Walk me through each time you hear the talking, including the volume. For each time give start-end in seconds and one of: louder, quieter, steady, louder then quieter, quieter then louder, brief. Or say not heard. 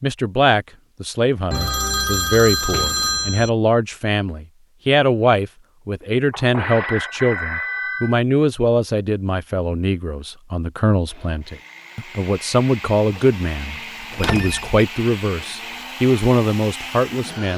0.0-17.5 steady.